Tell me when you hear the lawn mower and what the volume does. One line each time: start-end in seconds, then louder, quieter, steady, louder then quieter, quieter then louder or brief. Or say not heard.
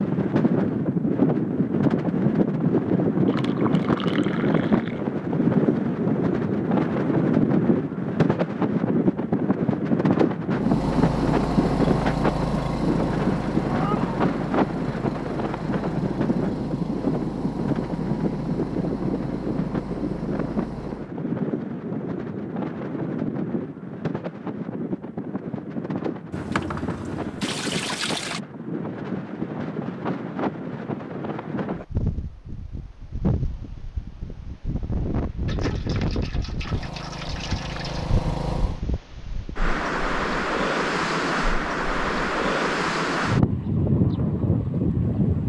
10.6-21.1 quieter
36.6-38.8 brief.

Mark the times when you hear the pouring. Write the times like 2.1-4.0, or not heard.
3.2-5.0, 26.3-28.4, 35.5-38.1.